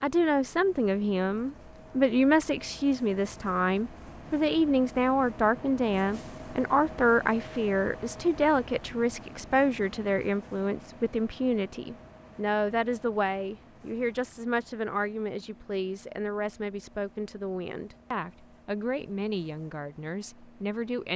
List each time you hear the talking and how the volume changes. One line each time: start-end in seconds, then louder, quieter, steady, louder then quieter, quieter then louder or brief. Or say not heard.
0.0-21.1 quieter.